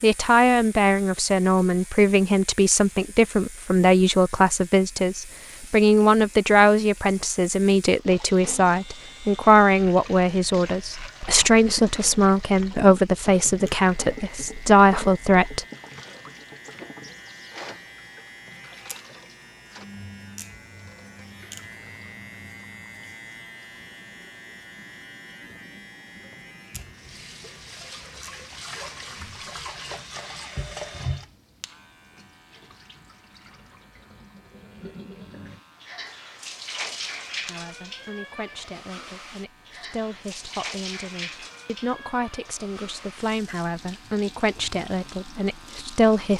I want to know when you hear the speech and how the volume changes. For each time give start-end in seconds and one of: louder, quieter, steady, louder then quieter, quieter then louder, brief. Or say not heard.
0.0-15.7 steady
37.4-46.3 louder.